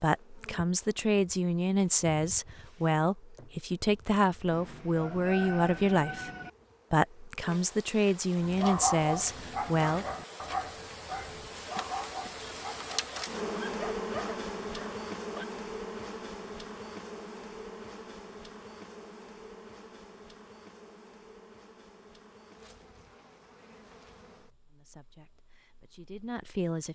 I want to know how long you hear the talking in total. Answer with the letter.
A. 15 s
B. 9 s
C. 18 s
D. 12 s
D.